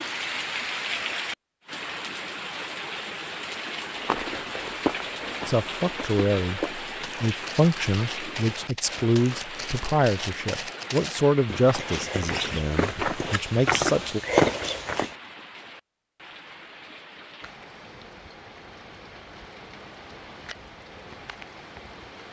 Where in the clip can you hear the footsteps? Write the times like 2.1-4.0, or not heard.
3.9-15.2.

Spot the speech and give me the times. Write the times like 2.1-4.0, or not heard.
5.5-14.2.